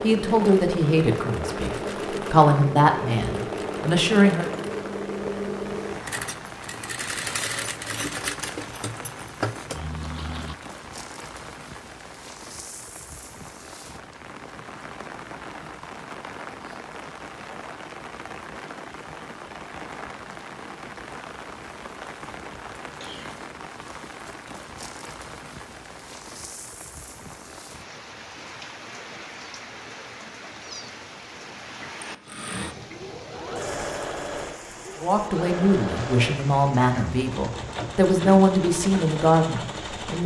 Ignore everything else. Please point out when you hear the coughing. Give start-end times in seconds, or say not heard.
23.0-23.4.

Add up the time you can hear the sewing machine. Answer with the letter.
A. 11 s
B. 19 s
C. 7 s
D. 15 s
B.